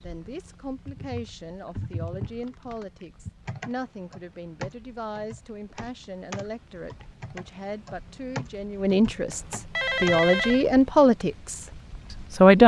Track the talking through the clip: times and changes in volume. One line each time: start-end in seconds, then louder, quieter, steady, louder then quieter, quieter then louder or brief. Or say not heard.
0.0-12.6 louder.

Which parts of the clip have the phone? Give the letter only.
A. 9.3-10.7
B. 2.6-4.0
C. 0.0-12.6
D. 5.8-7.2
A.